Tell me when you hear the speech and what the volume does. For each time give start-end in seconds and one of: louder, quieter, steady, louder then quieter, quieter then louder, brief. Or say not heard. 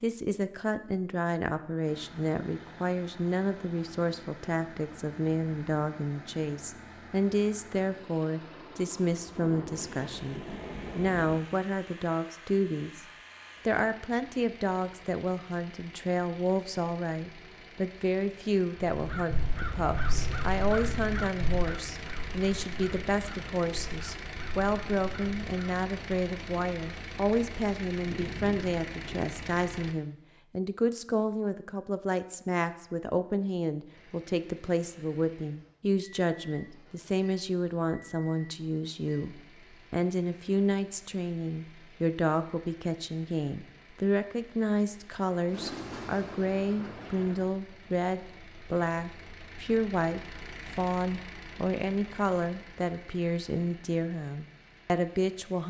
0.0-13.1 steady
13.7-55.6 steady.